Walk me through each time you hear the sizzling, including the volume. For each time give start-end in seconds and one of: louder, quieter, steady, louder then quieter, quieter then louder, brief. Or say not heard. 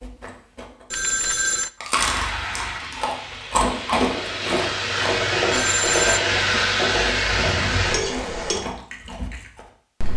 1.9-8.6 louder.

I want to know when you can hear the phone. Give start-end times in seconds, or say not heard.
0.9-1.7, 5.5-6.2.